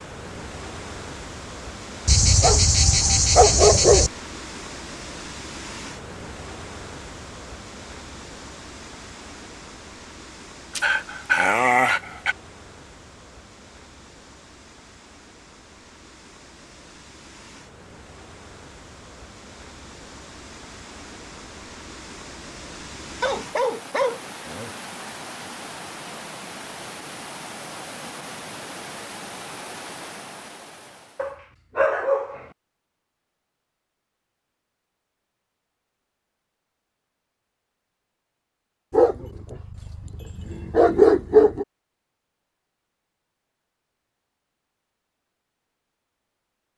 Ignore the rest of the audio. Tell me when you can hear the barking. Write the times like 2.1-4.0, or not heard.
2.0-4.1, 10.8-12.3, 23.2-24.7, 31.1-32.5, 38.9-41.6.